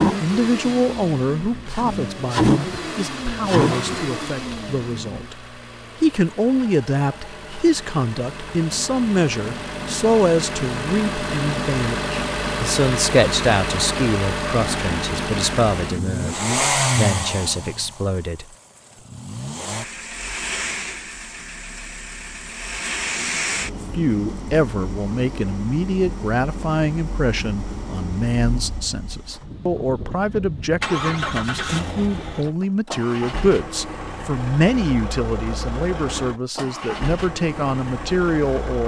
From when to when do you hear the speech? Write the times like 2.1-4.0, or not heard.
0.0-5.4, 6.0-18.4, 23.9-38.8.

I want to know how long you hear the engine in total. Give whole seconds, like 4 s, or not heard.
39 s.